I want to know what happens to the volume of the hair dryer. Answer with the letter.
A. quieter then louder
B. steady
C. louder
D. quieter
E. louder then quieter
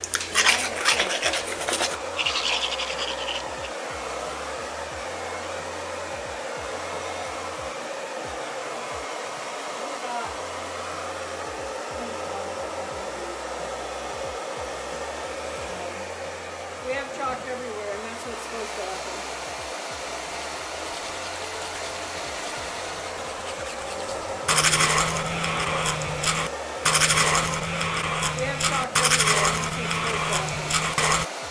B.